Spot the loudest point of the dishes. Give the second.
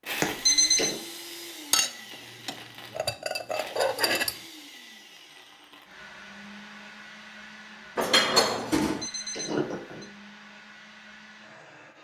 8 s.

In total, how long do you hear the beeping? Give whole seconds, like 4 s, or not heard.
2 s.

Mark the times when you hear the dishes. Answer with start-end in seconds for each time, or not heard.
1.7-4.3, 8.0-9.1.